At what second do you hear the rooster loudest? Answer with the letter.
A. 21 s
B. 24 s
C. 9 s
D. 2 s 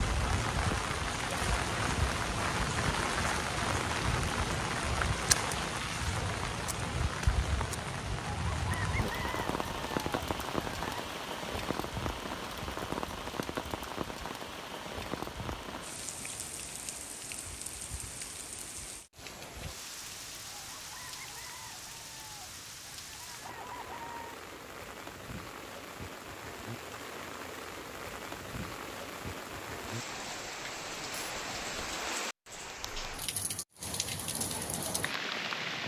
C.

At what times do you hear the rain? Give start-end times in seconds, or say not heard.
0.0-35.8.